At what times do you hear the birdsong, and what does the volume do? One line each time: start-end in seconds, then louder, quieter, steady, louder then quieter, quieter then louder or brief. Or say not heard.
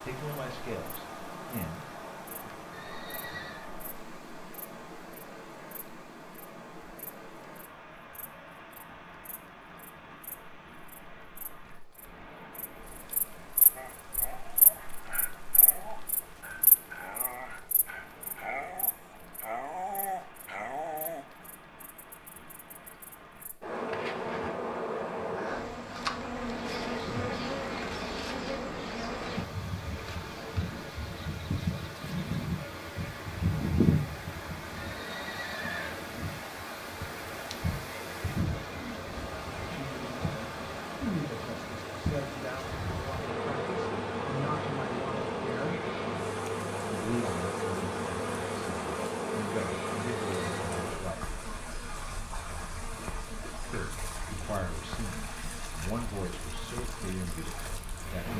not heard.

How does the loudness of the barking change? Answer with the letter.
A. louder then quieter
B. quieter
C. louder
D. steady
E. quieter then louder
C.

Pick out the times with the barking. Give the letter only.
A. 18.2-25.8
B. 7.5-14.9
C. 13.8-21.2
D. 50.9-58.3
C.